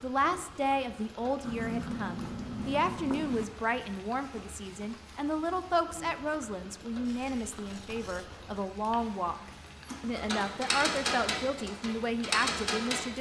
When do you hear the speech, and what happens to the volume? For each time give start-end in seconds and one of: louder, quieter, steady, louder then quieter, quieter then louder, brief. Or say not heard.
0.0-13.1 steady.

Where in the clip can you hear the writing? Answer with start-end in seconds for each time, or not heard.
1.4-3.5, 7.0-9.2.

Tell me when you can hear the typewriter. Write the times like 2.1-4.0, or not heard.
9.8-13.1.